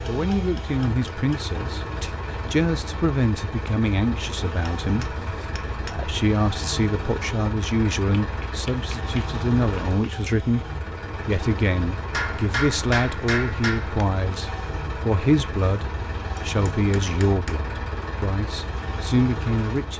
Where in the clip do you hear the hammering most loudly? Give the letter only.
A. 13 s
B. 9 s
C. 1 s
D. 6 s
A.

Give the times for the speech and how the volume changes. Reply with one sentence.
The speech can be heard from 0.1 to 19.9 s, at a steady volume.